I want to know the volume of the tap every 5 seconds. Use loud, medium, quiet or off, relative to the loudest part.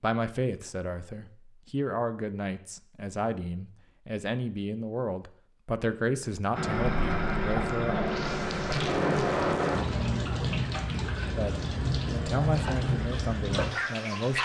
off, loud, loud.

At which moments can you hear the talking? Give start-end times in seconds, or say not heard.
0.0-8.0, 11.3-14.4.